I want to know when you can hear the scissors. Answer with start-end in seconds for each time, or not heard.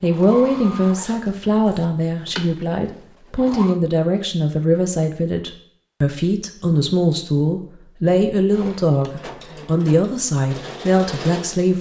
not heard.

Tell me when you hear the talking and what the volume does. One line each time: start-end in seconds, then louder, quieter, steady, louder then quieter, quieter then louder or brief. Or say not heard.
0.0-11.7 steady.